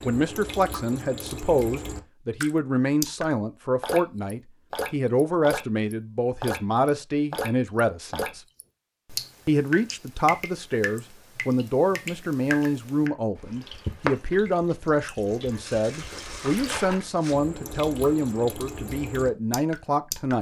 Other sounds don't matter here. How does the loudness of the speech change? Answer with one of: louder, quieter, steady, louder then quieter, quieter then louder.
steady.